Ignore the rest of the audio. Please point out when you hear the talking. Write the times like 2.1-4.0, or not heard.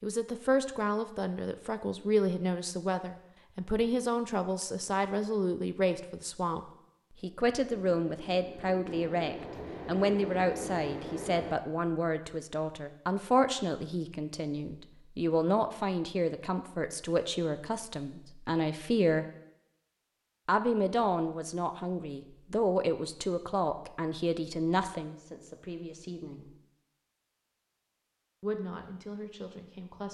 0.0-19.2, 20.4-26.5, 28.4-30.1.